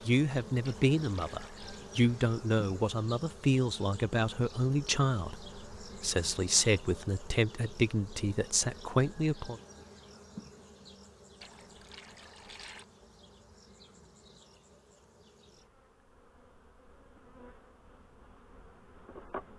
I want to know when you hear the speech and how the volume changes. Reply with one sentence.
The speech can be heard from 0.1 to 9.6 s, at a steady volume.